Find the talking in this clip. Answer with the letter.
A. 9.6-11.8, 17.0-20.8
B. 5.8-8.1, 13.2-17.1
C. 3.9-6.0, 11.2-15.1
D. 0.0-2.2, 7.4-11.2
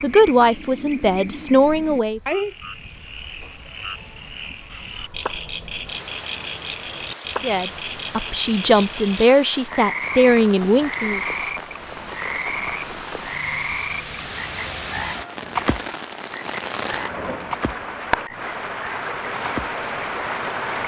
D.